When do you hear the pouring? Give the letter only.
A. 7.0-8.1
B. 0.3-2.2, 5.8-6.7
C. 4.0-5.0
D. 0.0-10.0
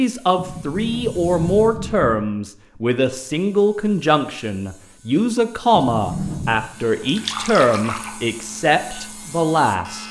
A.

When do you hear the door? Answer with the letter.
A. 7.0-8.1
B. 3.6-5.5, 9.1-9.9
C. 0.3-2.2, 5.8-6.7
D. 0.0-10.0
C.